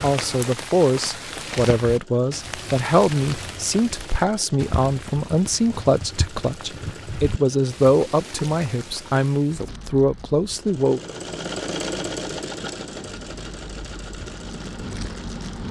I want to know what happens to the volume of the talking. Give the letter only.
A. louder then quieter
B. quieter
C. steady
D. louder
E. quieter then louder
C.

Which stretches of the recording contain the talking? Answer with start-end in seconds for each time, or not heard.
0.0-11.0.